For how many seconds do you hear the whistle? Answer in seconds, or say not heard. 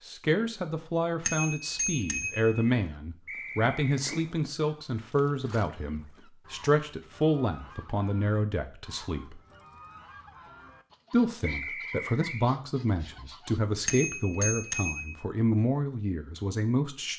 2 s.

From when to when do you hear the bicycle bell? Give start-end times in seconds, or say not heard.
1.2-2.6, 13.8-15.2.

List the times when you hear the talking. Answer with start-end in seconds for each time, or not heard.
0.1-9.4, 11.1-17.1.